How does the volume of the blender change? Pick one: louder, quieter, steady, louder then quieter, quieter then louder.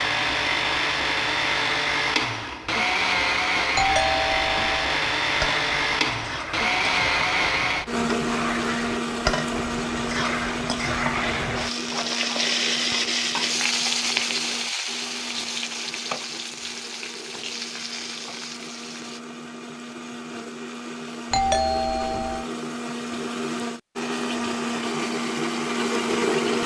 quieter then louder.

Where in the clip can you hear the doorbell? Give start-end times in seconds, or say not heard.
3.8-5.0, 21.3-22.5.